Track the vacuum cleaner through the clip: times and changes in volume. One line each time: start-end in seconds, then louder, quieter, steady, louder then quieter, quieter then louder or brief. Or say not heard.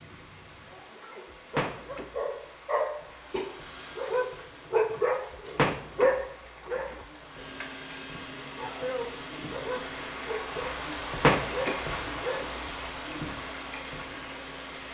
3.0-4.8 brief
7.2-14.8 steady.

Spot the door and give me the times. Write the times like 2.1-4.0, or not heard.
1.6-2.1, 5.5-7.0, 11.2-12.7.